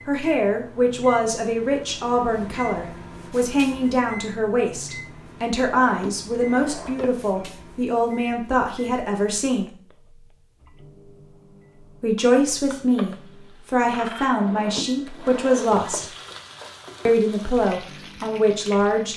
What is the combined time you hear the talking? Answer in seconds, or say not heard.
16 s.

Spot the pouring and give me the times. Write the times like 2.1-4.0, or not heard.
not heard.